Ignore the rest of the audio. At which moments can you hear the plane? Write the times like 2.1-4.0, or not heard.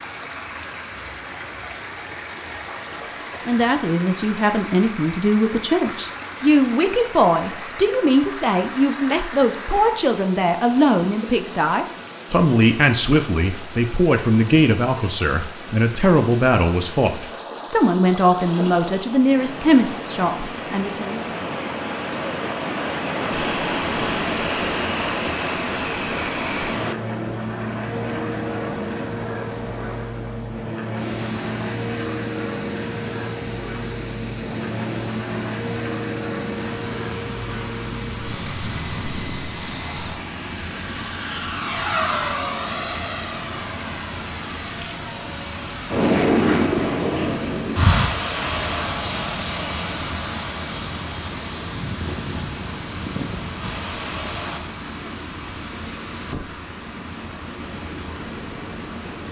23.3-54.6.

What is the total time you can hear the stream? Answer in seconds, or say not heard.
59 s.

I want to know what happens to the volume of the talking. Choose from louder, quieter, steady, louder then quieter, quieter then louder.
steady.